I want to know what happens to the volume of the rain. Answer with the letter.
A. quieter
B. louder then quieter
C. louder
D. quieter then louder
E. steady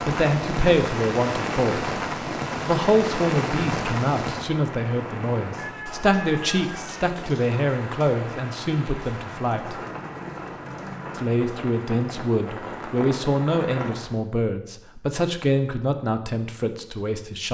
A.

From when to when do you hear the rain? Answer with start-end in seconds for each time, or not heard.
0.0-14.2.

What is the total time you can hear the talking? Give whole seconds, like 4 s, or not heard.
15 s.